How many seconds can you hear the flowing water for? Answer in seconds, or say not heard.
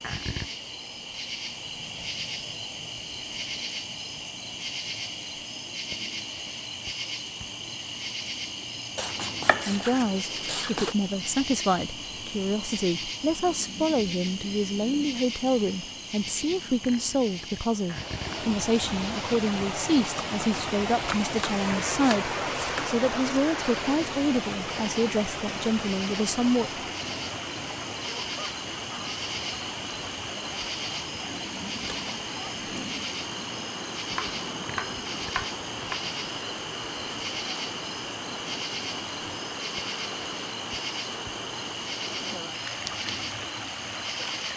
27 s.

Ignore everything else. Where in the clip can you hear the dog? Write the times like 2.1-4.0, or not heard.
not heard.